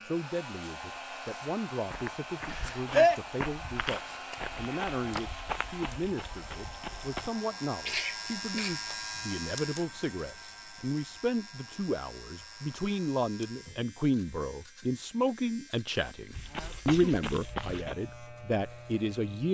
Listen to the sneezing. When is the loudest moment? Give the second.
3 s.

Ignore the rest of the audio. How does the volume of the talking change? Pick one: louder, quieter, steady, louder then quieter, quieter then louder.
louder.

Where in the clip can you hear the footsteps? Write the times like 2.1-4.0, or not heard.
1.9-7.3, 16.3-17.9.